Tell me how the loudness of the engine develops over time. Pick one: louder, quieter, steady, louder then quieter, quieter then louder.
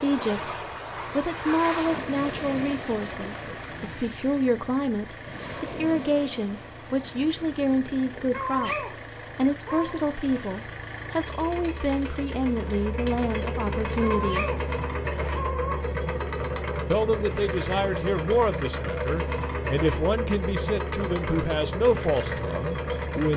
louder.